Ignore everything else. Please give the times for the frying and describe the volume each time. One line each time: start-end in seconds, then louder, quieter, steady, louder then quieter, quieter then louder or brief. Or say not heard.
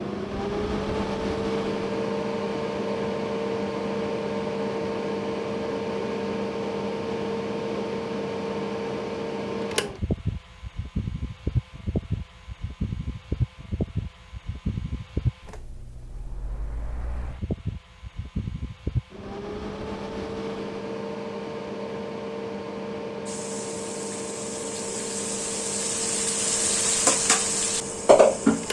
23.2-28.6 louder.